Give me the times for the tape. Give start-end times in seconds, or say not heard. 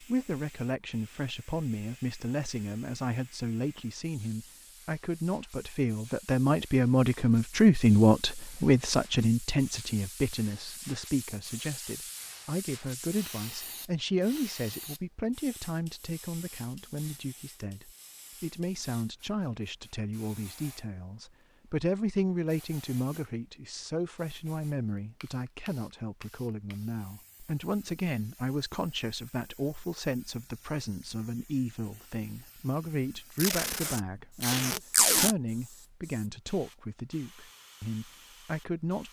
33.4-35.4.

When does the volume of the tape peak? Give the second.
35 s.